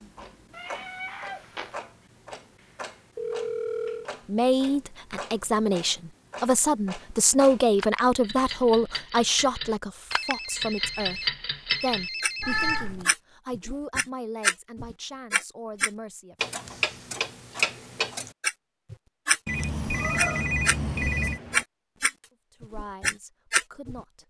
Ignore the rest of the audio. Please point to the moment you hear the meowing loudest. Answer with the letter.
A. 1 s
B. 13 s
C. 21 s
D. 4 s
B.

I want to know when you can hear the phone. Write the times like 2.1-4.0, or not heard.
3.1-4.0, 10.1-12.8, 19.4-21.4.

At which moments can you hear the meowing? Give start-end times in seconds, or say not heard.
0.5-1.7, 12.4-13.1, 19.9-21.6.